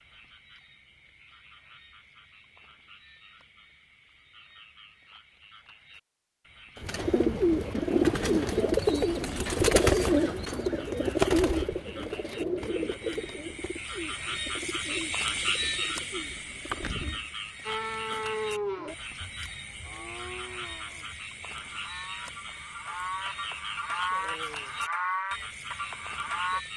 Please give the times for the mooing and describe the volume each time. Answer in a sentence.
You can hear the mooing from 17.6 to 26.6 s, getting quieter then louder.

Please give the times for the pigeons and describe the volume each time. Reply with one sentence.
You can hear the pigeons from 6.8 to 17.2 s, getting quieter.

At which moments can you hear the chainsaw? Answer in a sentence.
The chainsaw can't be heard in this clip.